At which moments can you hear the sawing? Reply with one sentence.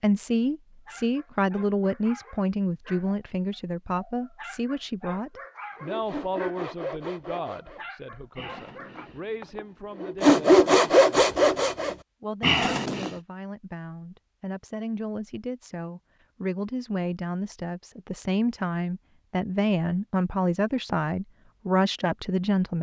You can hear the sawing from 5.8 to 13.1 s.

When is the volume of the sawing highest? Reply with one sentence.
The volume of the sawing peaks at 10 seconds.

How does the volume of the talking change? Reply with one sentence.
The volume of the talking goes down, then up.